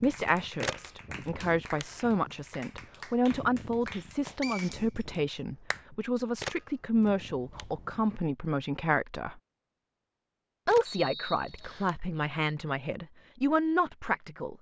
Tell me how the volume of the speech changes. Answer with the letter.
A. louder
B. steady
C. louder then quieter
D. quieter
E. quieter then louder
B.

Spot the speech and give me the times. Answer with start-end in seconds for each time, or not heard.
0.0-9.4, 10.7-14.5.